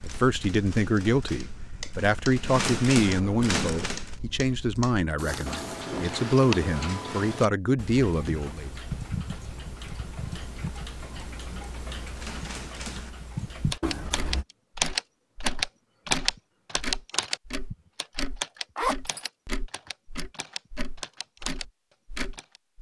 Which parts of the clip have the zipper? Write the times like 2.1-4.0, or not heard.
5.2-5.8, 18.8-19.3.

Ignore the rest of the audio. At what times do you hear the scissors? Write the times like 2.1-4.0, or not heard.
3.0-3.9, 13.8-14.4.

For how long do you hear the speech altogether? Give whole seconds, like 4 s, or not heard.
9 s.